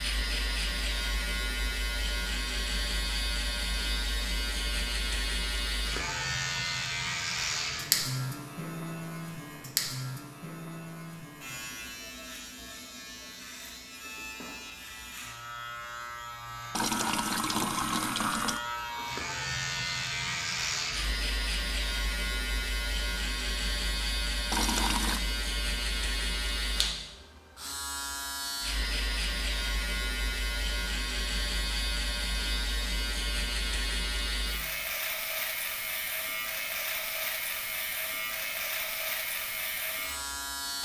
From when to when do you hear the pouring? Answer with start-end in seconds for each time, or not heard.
16.8-18.6, 24.5-25.2.